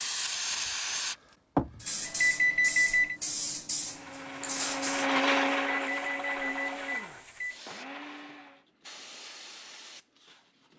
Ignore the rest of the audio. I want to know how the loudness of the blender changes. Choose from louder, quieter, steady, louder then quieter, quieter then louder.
louder then quieter.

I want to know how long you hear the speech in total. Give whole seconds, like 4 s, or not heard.
not heard.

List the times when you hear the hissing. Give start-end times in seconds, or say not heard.
0.0-10.7.